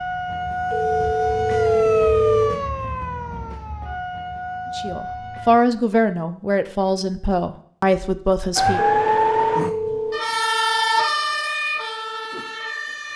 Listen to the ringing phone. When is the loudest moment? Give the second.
2 s.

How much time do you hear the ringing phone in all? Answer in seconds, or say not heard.
3 s.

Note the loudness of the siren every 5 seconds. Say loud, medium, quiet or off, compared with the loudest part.
medium, loud, loud.